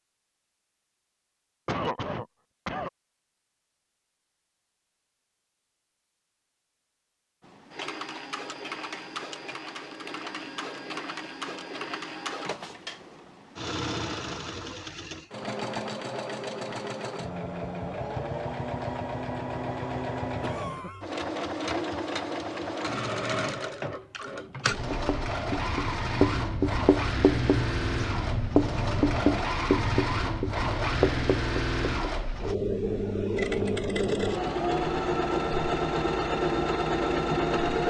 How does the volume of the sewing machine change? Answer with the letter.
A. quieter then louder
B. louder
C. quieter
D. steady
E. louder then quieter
B.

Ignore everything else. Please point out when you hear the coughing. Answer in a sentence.
You can hear the coughing from 1.6 to 2.9 s and from 20.4 to 21.1 s.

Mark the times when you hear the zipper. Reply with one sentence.
You can't hear the zipper here.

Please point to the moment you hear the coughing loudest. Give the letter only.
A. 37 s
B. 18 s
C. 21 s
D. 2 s
D.